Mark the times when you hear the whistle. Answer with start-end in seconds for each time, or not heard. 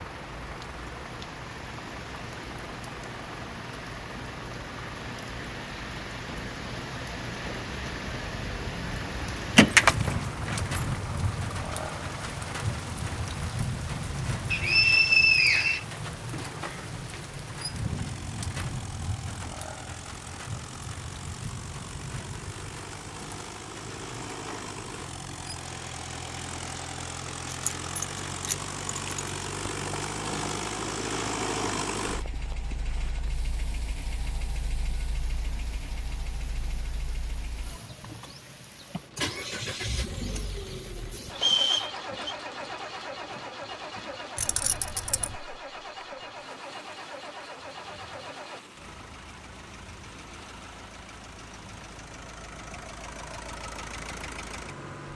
14.5-15.8, 41.4-42.4.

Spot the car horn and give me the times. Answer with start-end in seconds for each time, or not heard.
not heard.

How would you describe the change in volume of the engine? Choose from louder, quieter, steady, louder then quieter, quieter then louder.
louder then quieter.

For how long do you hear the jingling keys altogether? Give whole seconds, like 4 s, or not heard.
4 s.